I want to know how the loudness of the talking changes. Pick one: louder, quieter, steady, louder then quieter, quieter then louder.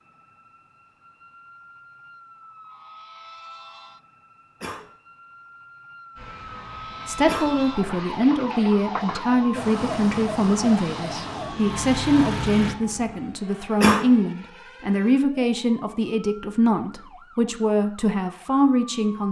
steady.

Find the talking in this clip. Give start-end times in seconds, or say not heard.
7.0-19.2.